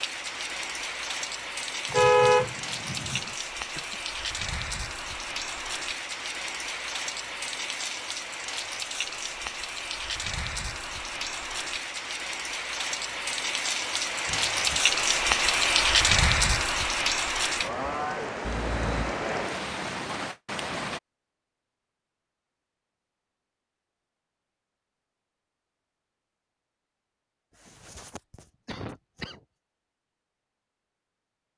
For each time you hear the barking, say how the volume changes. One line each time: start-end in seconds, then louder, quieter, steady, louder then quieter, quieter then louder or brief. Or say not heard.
not heard.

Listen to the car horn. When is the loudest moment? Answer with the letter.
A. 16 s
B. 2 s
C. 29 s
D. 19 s
B.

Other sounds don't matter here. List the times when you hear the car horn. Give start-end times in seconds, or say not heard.
1.9-3.3, 18.4-19.1.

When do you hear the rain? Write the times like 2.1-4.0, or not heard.
0.0-21.0.